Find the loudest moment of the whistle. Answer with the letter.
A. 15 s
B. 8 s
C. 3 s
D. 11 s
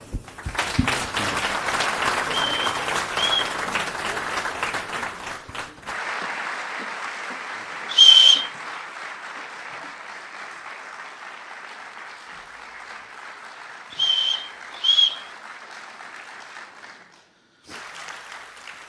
B.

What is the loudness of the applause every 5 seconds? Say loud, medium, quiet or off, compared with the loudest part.
loud, medium, quiet, quiet.